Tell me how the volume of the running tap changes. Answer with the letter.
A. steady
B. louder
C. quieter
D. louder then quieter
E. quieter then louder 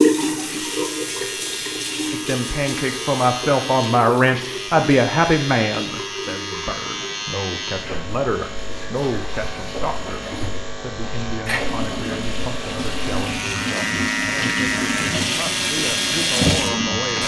E.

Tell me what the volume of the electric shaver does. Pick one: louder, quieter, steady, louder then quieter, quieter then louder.
louder.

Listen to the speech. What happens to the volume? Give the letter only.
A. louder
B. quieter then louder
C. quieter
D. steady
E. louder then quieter
C.